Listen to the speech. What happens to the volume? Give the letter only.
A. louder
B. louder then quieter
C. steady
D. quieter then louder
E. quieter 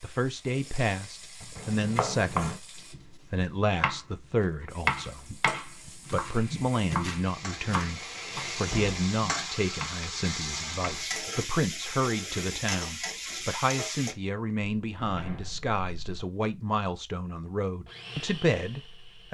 C.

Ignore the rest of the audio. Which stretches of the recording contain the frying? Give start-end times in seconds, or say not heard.
0.0-3.0, 4.7-14.2.